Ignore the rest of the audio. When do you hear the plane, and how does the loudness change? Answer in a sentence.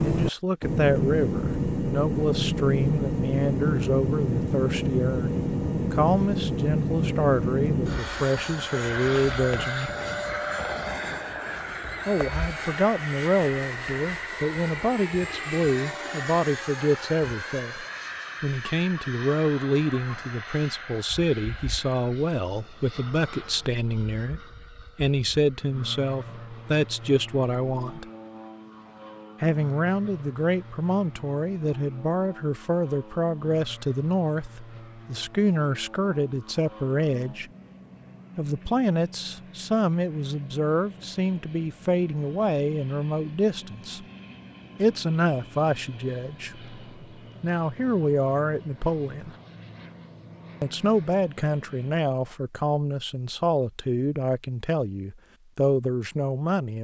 You can hear the plane from 0.0 to 52.1 s, getting quieter.